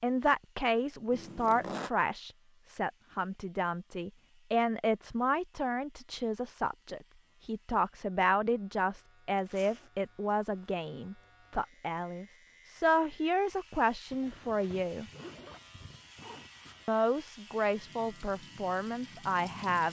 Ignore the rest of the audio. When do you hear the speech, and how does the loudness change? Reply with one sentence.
The speech can be heard from 0.0 to 15.1 s, at a steady volume; and briefly from 16.9 to 19.8 s.